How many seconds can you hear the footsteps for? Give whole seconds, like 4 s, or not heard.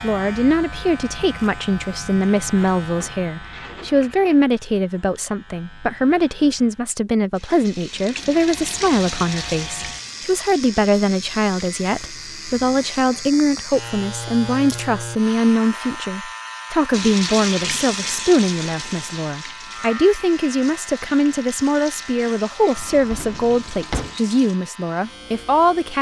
not heard.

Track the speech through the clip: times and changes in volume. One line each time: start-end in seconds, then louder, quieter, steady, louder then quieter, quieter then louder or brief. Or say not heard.
0.0-25.9 steady.